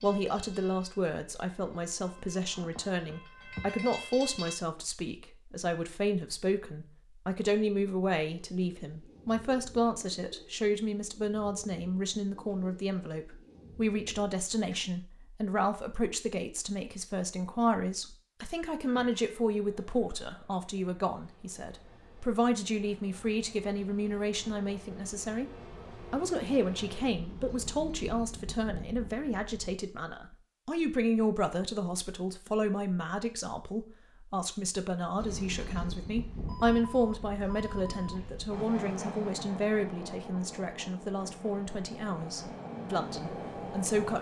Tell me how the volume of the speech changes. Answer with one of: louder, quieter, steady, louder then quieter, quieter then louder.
steady.